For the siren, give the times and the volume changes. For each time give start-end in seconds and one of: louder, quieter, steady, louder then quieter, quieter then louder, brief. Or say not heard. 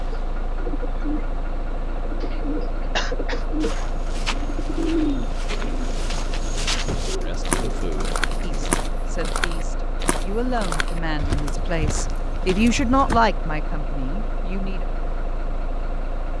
not heard.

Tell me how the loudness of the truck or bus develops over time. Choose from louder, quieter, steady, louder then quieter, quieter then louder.
steady.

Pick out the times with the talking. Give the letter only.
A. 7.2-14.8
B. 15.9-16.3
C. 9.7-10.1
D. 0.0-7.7
A.